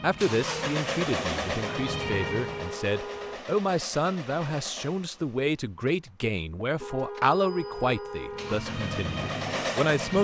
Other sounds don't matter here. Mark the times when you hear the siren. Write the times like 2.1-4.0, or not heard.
0.0-2.8, 8.3-10.2.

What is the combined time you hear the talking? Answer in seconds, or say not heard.
10 s.